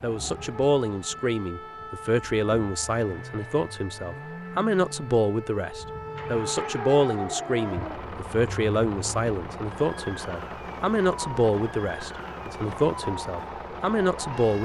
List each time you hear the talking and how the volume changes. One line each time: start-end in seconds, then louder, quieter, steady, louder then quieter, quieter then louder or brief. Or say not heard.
0.0-14.6 steady.